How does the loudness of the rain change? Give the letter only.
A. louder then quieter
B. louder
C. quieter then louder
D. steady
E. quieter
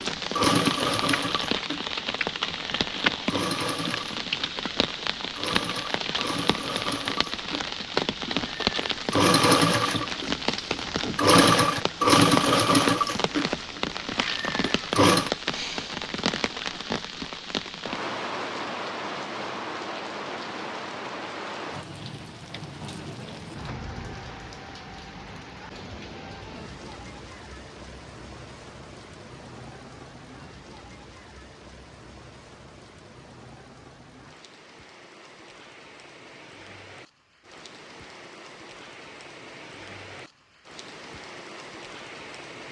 E.